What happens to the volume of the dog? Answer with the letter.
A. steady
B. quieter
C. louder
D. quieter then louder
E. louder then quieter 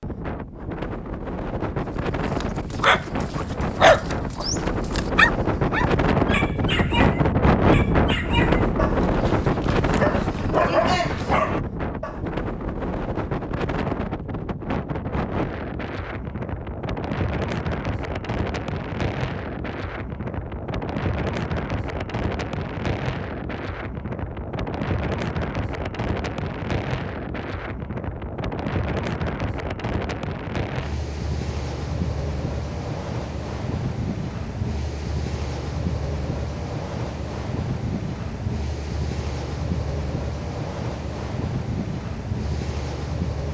D.